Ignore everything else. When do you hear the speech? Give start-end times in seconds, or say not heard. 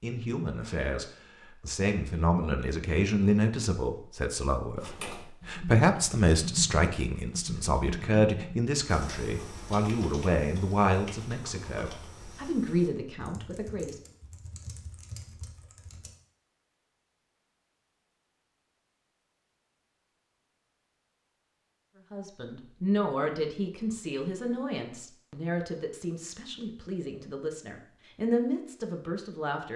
0.0-14.0, 22.1-29.7.